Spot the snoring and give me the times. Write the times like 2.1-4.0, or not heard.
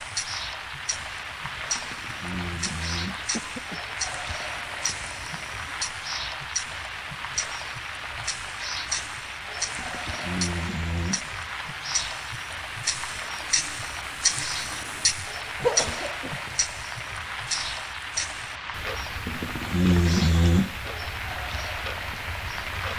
1.8-3.2, 9.8-11.3, 19.2-20.8.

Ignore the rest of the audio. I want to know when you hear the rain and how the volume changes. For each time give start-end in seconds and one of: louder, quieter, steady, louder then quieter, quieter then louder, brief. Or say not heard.
0.0-22.9 steady.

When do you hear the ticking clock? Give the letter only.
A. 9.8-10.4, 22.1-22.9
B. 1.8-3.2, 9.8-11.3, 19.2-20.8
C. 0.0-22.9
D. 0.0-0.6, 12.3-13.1
C.